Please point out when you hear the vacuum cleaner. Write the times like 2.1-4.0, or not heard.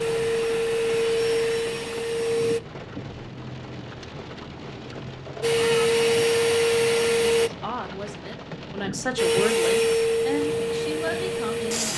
0.0-2.6, 5.4-7.5, 9.2-11.9.